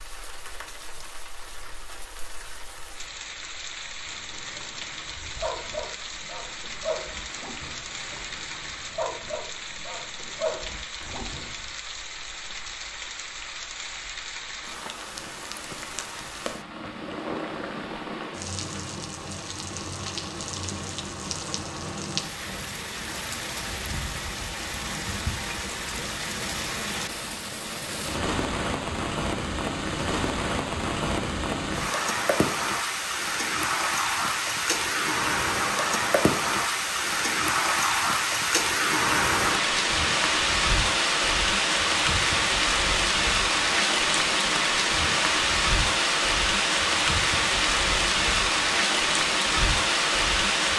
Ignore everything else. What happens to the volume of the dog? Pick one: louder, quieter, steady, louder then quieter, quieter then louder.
quieter then louder.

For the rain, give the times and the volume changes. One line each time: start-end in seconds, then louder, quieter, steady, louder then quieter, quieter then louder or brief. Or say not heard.
0.0-50.7 louder.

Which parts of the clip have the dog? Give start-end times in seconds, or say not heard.
4.0-11.6.